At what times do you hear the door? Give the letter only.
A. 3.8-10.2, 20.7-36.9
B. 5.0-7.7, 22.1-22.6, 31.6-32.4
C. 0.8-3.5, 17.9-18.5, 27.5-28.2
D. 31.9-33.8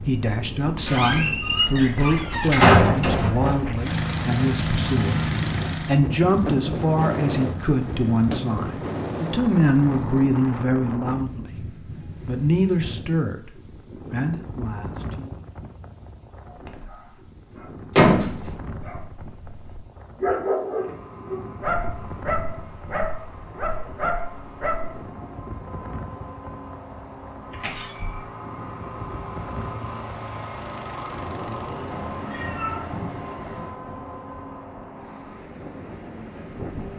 C.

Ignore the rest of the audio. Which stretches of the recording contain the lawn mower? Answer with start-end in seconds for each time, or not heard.
3.8-10.2, 20.7-36.9.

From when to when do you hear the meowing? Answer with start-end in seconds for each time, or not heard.
31.9-33.8.